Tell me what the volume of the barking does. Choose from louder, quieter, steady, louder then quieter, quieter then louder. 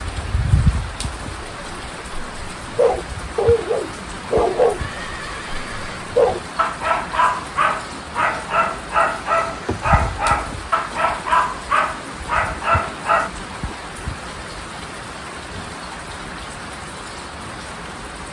steady.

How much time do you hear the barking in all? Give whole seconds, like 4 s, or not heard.
12 s.